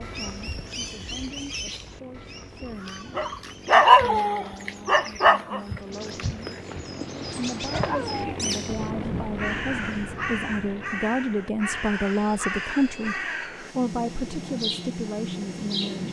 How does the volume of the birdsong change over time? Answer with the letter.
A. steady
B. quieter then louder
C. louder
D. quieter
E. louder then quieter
B.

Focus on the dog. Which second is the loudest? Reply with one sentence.
The volume of the dog peaks at 4 seconds.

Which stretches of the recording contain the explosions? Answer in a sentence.
The explosions can be heard from 8.7 to 10.7 s.